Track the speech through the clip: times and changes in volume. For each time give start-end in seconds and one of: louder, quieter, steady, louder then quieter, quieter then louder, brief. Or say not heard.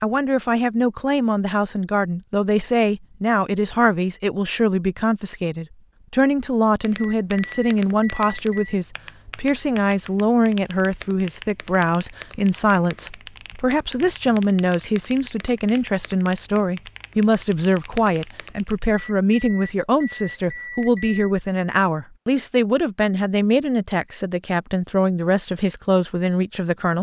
0.0-26.9 steady.